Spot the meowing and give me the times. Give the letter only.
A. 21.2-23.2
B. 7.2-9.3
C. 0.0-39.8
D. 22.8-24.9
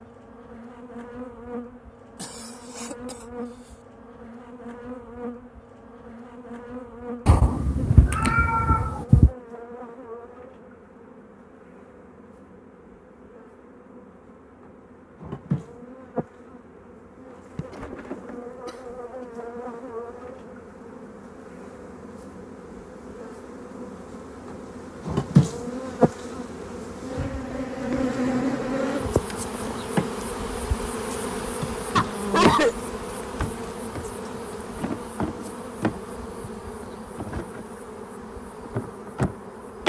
B.